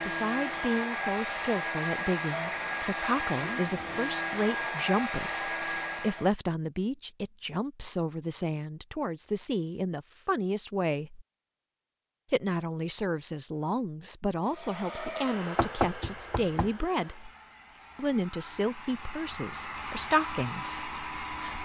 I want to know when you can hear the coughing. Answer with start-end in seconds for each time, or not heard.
not heard.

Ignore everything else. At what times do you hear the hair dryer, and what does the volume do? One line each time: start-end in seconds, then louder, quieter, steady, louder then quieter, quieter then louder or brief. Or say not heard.
0.0-6.3 steady
14.4-21.5 quieter then louder.